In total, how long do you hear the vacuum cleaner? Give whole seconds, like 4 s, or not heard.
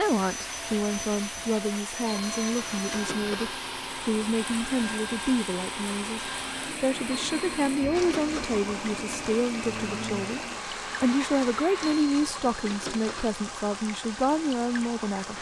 12 s.